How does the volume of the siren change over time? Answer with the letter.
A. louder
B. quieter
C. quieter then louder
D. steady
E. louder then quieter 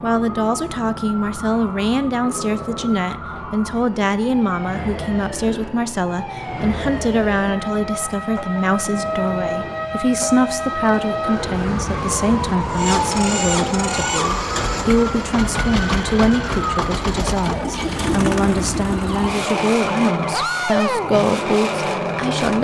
E.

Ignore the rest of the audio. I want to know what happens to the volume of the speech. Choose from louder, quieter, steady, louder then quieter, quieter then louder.
steady.